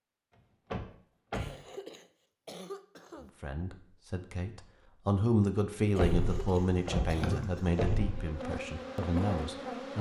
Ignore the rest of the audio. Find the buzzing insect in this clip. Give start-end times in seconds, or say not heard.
6.2-9.9.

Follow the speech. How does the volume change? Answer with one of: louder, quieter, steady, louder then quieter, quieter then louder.
louder then quieter.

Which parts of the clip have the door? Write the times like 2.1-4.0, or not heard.
0.7-1.5, 6.0-8.3.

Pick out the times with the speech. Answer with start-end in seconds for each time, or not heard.
3.4-9.9.